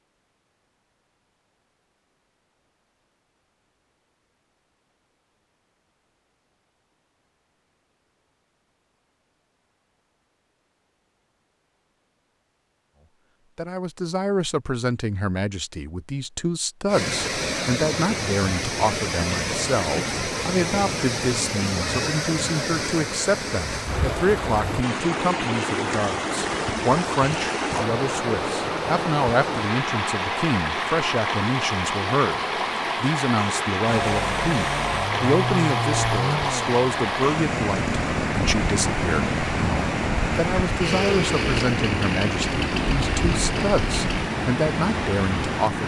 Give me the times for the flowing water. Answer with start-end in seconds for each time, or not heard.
16.9-45.8.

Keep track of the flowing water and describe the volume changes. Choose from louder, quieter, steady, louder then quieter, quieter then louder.
steady.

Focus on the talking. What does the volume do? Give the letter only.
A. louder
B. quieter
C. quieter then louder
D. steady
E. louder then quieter
D.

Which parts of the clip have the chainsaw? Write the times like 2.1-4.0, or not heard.
33.9-44.3.